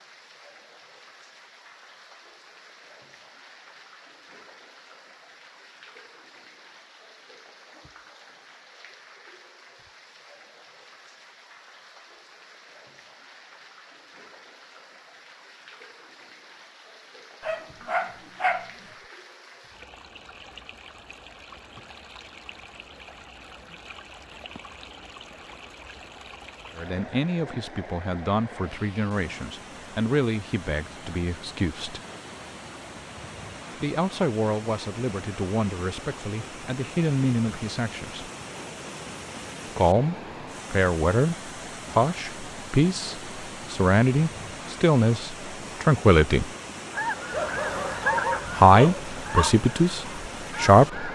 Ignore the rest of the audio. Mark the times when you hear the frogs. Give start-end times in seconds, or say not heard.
not heard.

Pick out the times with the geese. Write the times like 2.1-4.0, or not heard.
46.9-51.1.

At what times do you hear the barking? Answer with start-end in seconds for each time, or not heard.
17.4-18.7, 47.3-49.5.